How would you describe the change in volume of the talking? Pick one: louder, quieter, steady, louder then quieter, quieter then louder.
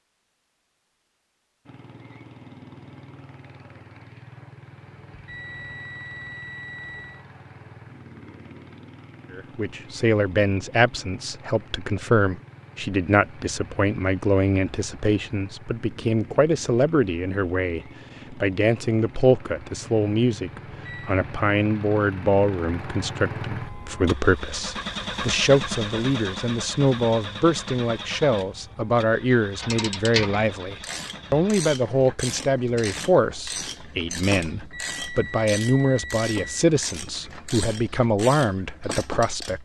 steady.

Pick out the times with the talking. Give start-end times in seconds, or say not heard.
9.3-39.6.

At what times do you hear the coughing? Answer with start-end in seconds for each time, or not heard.
not heard.